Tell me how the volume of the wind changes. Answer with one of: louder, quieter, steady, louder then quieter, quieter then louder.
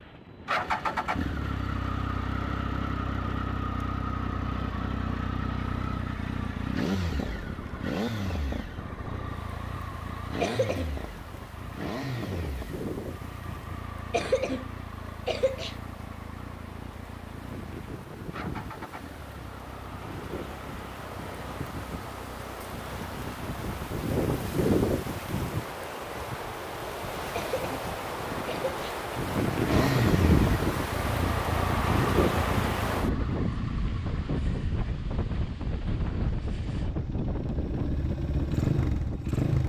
louder.